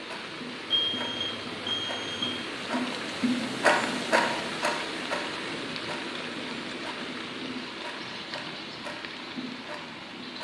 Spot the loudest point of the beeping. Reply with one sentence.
The volume of the beeping peaks at 1 second.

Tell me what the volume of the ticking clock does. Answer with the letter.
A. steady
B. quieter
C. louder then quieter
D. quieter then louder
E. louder
C.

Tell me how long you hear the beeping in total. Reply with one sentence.
You can hear the beeping for 2 seconds altogether.